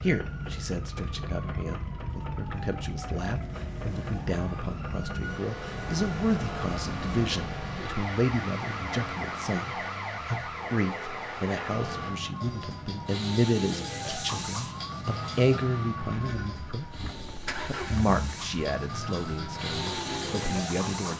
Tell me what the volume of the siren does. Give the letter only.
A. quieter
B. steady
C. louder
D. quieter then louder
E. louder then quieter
B.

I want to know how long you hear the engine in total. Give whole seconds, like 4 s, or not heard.
18 s.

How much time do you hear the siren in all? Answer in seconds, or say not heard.
21 s.